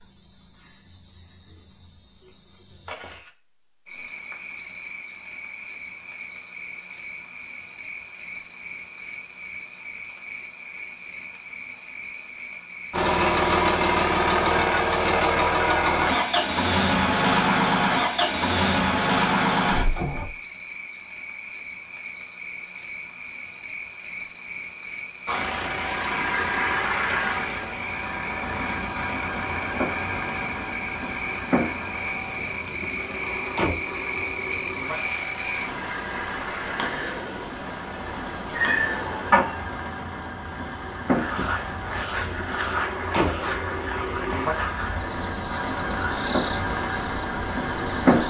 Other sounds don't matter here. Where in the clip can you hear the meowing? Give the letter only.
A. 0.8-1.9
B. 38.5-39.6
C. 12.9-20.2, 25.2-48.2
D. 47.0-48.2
B.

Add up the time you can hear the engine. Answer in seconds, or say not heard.
30 s.